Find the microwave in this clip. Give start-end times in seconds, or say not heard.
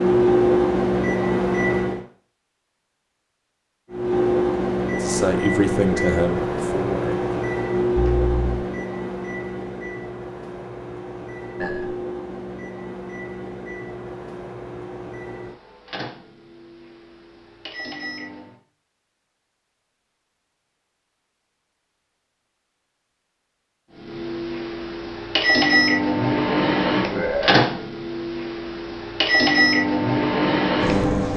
0.0-2.0, 3.9-18.6, 24.1-31.3.